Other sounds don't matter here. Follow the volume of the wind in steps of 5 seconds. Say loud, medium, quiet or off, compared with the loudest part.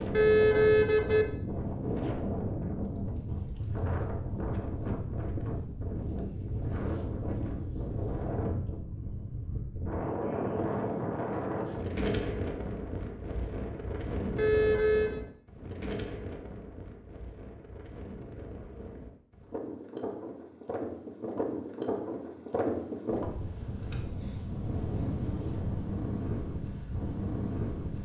loud, loud, loud, medium, loud, loud.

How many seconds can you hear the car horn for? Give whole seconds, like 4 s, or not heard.
2 s.